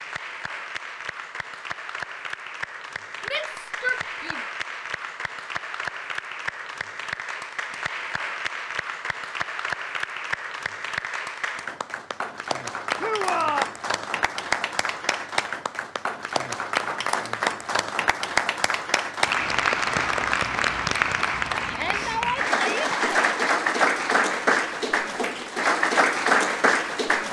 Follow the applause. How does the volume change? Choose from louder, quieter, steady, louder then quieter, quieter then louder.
louder.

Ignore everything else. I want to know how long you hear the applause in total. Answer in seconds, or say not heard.
27 s.